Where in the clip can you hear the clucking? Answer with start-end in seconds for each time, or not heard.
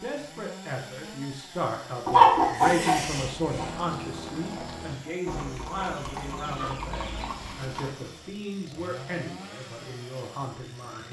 2.0-3.7, 5.8-7.3.